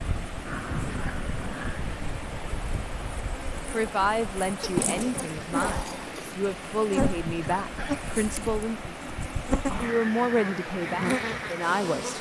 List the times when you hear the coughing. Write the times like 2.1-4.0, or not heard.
0.5-1.1, 7.0-8.1.